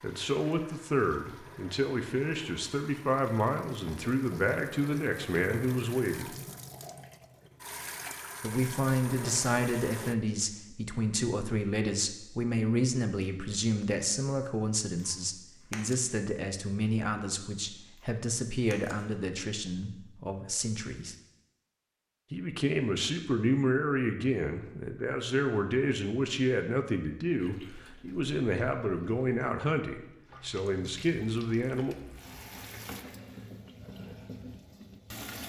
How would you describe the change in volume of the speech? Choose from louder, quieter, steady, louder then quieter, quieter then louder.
steady.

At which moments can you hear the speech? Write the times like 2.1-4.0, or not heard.
0.0-6.3, 8.4-21.1, 22.3-31.9.